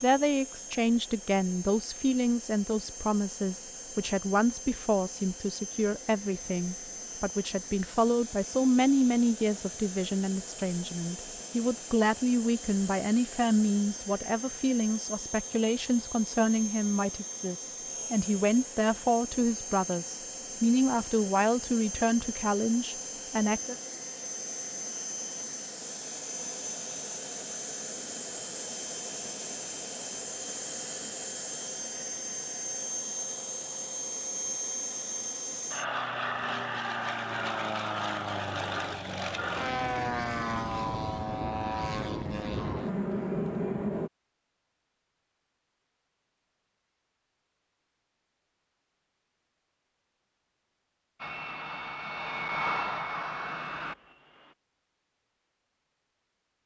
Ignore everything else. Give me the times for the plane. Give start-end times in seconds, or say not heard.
0.0-44.1, 51.1-54.5.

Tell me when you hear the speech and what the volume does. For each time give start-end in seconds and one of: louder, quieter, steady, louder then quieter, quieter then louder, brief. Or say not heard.
0.0-23.8 steady.